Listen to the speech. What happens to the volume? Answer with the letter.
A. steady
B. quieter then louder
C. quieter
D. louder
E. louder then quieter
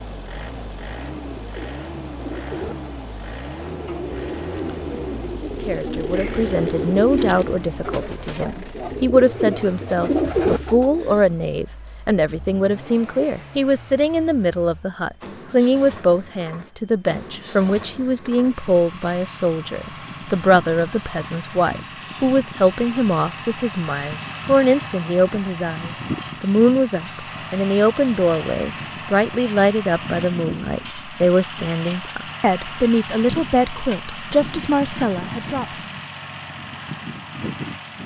A.